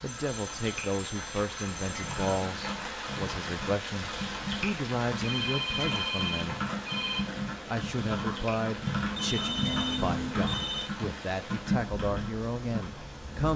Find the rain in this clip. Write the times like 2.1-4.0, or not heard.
0.0-13.5.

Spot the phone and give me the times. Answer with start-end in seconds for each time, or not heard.
0.1-2.5, 5.2-7.2, 9.1-10.8.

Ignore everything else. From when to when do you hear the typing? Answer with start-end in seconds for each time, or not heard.
1.9-12.9.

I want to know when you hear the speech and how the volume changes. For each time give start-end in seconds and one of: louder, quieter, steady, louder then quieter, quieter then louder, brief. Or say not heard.
0.0-6.6 steady
7.7-13.5 steady.